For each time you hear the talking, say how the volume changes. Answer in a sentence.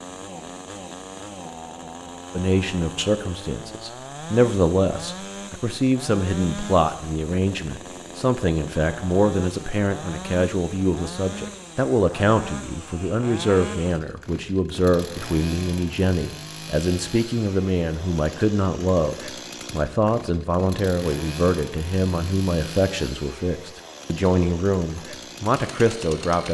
The talking can be heard from 2.3 to 26.5 s, at a steady volume.